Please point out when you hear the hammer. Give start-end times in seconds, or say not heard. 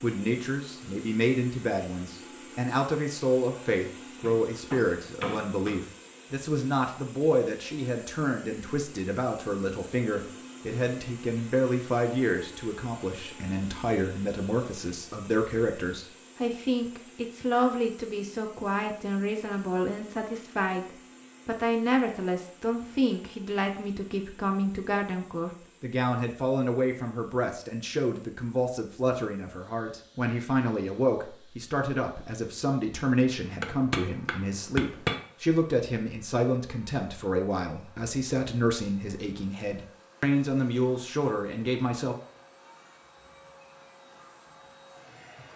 4.2-5.8, 33.2-35.2.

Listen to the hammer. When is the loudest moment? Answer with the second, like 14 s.
35 s.